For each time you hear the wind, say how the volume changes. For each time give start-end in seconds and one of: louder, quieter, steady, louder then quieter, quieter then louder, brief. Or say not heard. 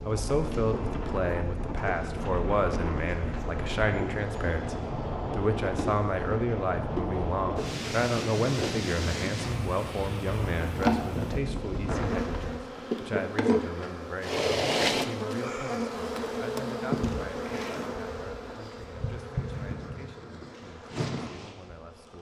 0.0-12.6 steady.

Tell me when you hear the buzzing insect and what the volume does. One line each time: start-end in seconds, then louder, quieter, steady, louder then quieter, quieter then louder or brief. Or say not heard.
0.0-22.1 louder then quieter.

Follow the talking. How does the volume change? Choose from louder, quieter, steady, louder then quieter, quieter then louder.
quieter.